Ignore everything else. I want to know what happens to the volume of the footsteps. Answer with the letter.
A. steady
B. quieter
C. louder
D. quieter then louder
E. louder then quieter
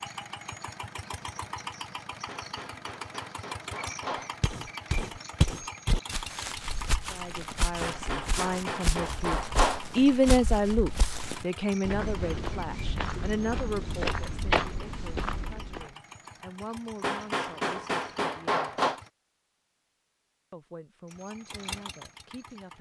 D.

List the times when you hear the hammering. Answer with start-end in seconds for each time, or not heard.
2.2-4.3, 7.8-9.8, 17.0-19.0.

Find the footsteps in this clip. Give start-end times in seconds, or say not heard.
4.4-15.9.